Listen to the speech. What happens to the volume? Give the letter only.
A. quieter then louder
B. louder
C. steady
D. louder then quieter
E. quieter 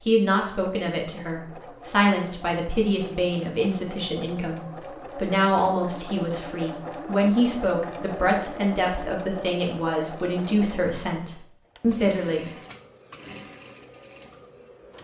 C.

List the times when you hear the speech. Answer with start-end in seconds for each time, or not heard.
0.0-12.4.